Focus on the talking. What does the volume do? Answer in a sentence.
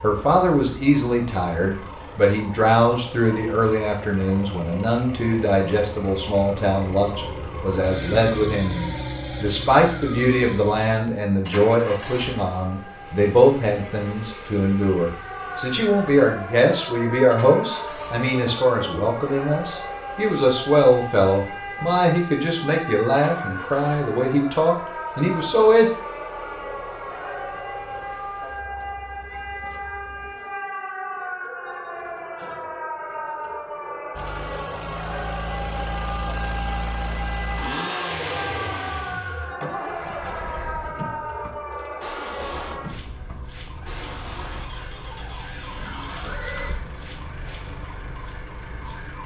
The volume of the talking stays about the same.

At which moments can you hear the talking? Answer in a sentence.
You can hear the talking from 0.0 to 25.9 s.